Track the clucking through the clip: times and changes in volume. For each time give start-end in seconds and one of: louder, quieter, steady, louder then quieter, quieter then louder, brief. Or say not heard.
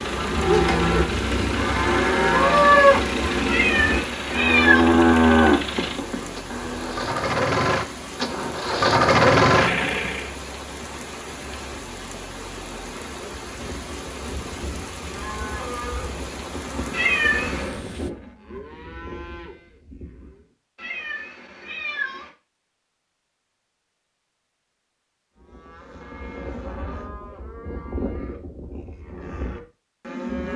not heard.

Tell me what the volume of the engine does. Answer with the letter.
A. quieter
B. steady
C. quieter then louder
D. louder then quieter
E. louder
E.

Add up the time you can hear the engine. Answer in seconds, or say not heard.
10 s.